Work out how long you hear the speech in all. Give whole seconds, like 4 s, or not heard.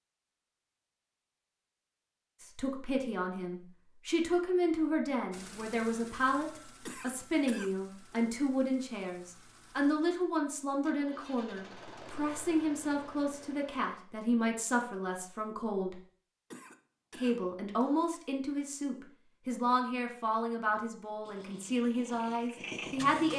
20 s.